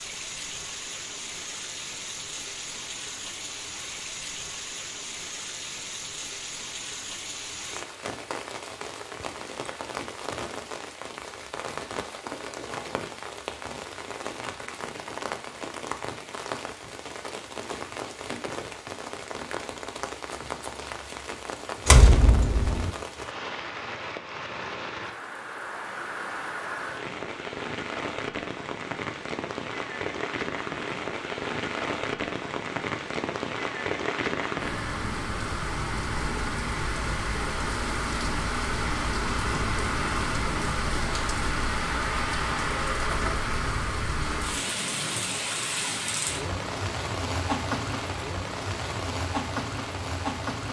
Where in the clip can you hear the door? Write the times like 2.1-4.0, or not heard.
21.9-22.9.